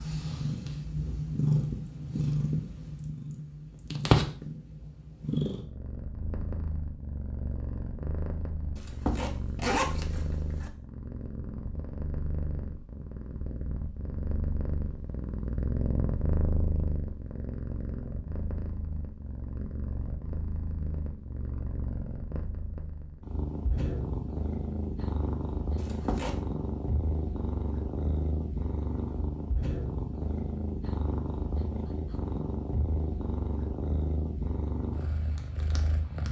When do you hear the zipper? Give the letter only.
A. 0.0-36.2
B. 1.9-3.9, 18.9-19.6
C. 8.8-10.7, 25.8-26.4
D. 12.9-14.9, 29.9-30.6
C.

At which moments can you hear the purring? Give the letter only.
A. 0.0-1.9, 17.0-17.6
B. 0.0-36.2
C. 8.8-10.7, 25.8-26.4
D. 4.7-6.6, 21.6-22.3
B.